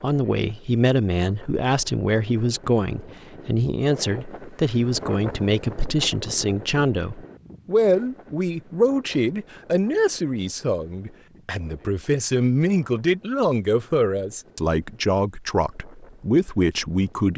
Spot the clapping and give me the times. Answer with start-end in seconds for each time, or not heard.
not heard.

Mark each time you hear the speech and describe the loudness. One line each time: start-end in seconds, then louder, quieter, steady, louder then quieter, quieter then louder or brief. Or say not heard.
0.0-17.3 steady.